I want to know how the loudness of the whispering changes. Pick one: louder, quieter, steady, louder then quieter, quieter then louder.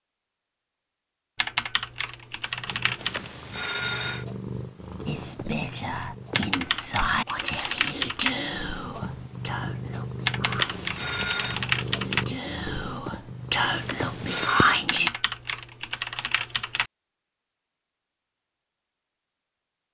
quieter then louder.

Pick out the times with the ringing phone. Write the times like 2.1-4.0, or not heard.
3.0-4.2, 10.4-11.6, 13.7-14.8.